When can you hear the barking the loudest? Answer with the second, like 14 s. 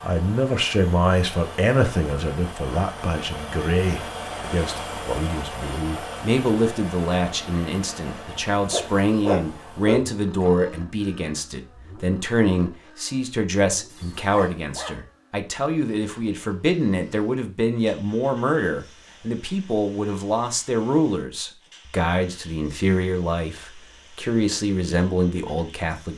9 s.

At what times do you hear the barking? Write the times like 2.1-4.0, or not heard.
8.7-10.5, 13.8-15.0.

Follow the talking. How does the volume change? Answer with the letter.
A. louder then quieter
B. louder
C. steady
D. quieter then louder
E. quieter
C.